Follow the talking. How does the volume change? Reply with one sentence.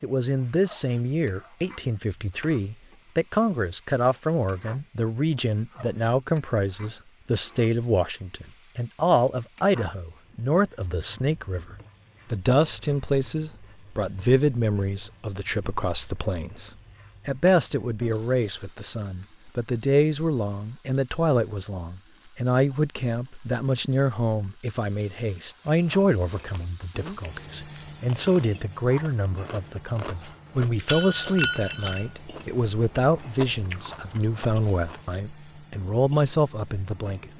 The volume of the talking stays about the same.